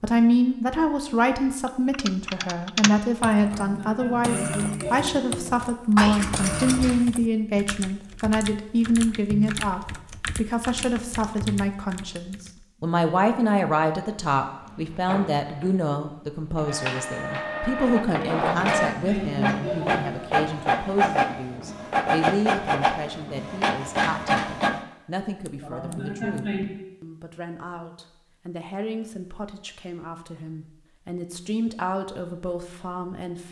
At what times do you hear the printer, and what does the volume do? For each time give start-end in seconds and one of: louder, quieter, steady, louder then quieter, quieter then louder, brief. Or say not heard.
14.6-24.8 louder.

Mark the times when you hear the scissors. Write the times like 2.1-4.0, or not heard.
6.0-7.0, 25.4-26.4.